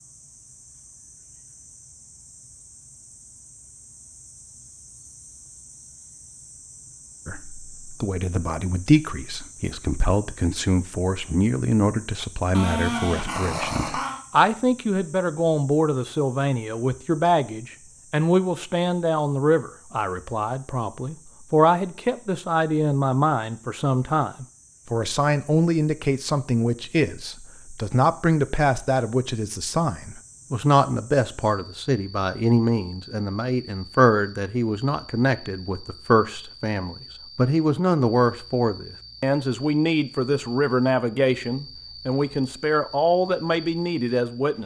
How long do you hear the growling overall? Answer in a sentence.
The growling can be heard for 2 seconds in total.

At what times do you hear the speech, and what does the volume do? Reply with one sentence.
The speech can be heard from 7.2 to 44.6 s, at a steady volume.